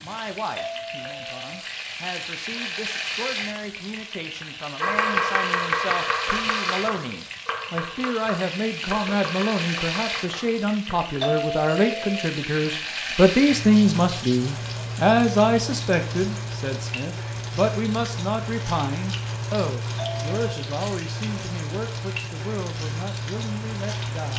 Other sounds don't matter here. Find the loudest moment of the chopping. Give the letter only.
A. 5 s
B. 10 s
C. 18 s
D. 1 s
A.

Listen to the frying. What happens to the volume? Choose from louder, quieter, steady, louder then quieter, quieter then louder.
steady.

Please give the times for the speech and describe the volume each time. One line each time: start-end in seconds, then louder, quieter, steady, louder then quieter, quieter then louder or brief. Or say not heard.
0.0-24.3 louder then quieter.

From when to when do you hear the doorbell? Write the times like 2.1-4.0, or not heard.
0.6-1.6, 11.2-12.3, 19.9-20.7.